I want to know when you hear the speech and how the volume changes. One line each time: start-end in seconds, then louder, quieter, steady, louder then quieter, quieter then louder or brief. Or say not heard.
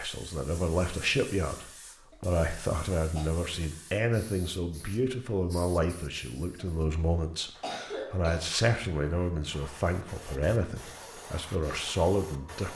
0.0-12.7 steady.